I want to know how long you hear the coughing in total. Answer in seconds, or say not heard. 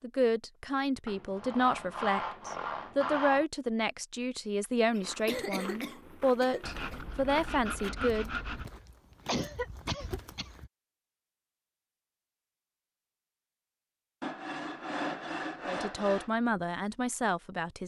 3 s.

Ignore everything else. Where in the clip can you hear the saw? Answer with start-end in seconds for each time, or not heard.
1.1-3.5, 6.6-8.7, 14.2-16.3.